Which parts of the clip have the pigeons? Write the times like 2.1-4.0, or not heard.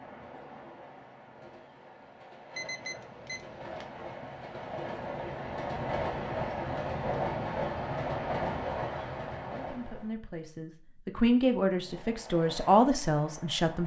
not heard.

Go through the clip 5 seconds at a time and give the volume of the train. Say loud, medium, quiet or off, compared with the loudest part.
medium, loud, quiet.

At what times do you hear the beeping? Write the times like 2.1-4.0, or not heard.
2.5-3.9.